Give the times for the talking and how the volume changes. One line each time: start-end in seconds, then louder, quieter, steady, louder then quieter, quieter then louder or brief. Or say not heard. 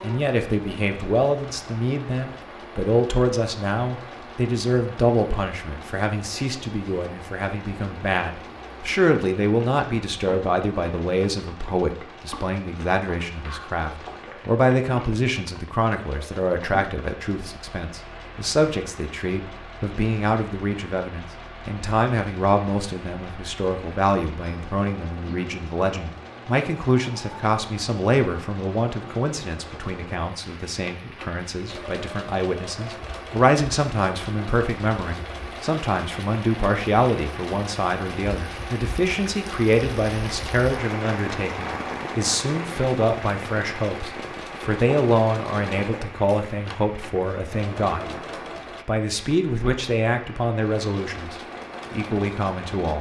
0.0-48.0 steady
48.9-52.9 quieter then louder.